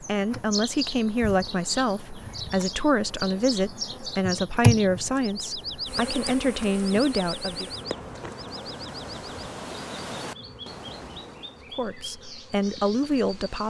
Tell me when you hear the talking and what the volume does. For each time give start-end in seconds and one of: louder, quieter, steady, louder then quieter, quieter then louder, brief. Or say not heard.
0.0-7.7 steady
11.8-13.6 brief.